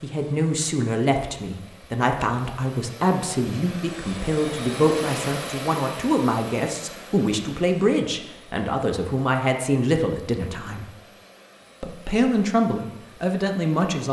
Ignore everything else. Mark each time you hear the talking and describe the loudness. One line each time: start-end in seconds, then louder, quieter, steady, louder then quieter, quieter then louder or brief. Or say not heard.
0.0-10.9 steady
11.8-14.0 brief.